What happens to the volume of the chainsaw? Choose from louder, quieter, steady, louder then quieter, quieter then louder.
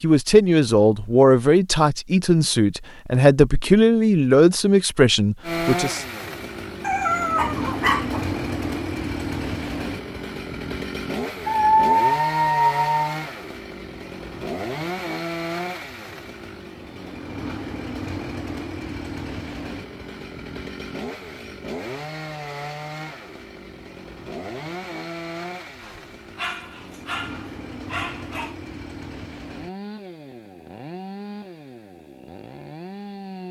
quieter.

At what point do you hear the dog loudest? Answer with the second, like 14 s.
12 s.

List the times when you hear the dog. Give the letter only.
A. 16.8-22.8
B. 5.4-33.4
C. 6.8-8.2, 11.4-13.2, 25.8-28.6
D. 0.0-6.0
C.